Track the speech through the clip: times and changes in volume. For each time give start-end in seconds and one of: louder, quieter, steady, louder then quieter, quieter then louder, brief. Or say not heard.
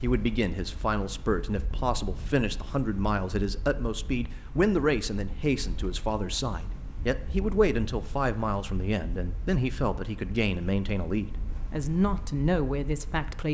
0.0-13.4 steady.